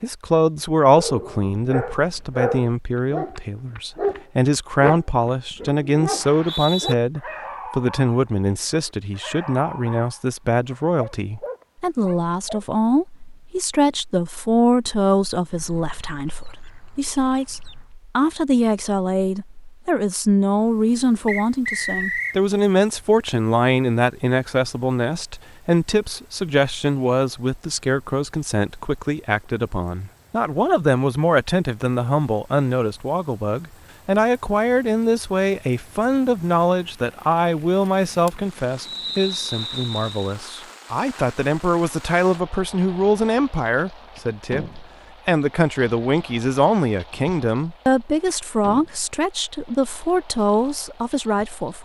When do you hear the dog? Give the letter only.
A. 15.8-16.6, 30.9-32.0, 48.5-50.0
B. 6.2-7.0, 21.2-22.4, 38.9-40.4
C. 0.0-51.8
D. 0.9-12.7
D.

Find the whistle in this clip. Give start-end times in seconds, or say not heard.
6.2-7.0, 21.2-22.4, 38.9-40.4.